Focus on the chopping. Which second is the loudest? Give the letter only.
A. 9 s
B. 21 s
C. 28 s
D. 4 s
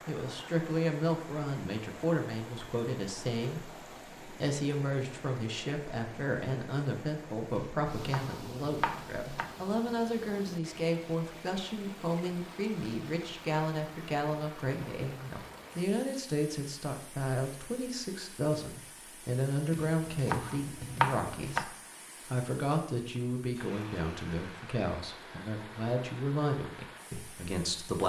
B.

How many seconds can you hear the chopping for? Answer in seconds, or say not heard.
4 s.